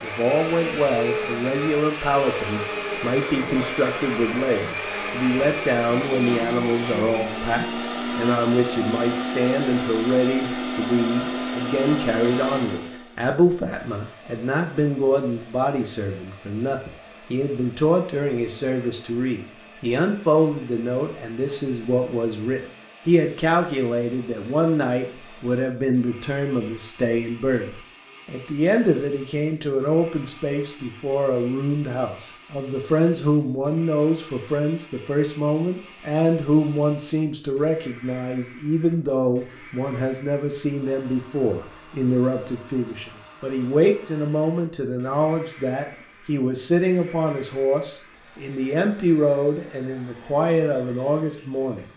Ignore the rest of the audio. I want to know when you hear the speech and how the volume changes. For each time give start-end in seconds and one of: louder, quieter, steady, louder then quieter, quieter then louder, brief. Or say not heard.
0.0-51.9 steady.